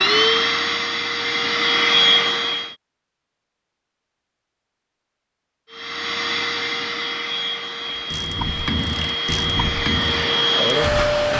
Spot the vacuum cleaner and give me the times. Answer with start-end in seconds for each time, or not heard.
0.0-2.8, 5.7-11.3.